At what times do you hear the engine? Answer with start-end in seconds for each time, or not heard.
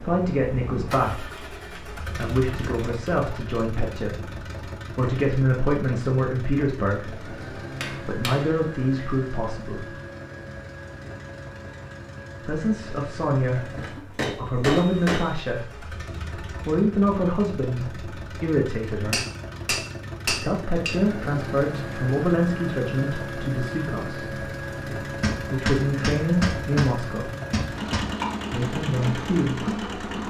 0.0-30.2.